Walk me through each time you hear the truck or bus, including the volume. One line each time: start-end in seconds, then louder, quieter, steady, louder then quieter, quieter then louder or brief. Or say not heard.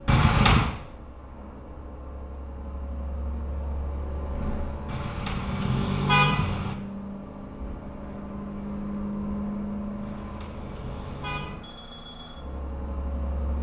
0.0-13.5 louder then quieter.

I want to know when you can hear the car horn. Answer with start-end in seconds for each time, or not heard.
0.1-0.7, 4.8-6.8, 10.0-11.6.